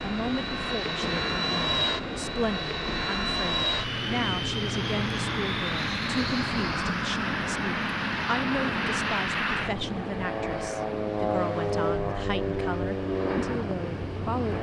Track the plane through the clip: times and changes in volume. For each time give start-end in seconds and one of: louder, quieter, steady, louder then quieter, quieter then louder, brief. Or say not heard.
0.0-14.5 steady.